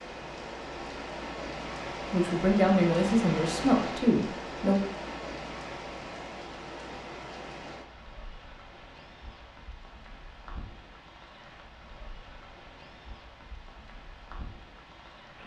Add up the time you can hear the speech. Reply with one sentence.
You can hear the speech for 3 seconds altogether.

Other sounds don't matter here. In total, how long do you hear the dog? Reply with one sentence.
You can't hear the dog here.